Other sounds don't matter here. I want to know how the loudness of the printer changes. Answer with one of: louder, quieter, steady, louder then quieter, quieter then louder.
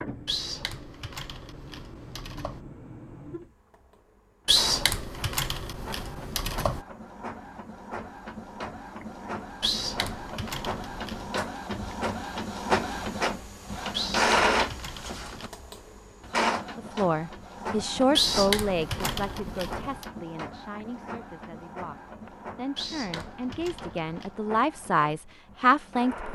louder then quieter.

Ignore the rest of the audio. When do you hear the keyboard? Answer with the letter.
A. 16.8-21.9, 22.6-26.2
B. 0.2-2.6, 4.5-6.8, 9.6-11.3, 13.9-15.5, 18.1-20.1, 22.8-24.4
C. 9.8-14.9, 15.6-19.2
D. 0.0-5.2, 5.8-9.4
B.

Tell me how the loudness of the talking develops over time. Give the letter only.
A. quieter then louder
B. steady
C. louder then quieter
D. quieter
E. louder
A.